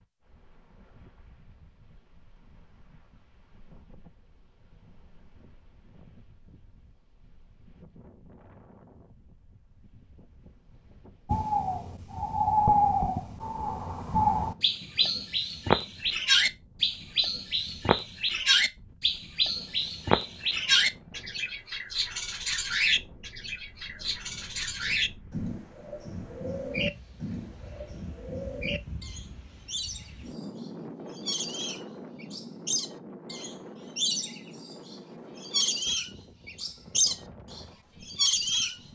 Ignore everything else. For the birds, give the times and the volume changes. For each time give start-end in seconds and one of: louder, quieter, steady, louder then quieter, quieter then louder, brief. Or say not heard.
11.2-38.8 quieter then louder.